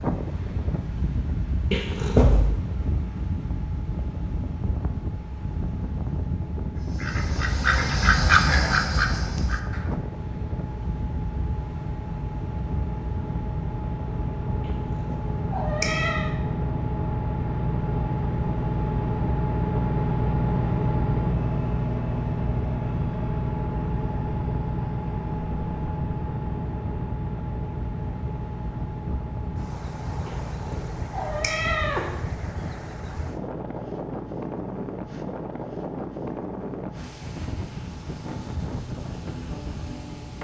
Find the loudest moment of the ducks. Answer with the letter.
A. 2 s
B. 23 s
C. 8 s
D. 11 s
C.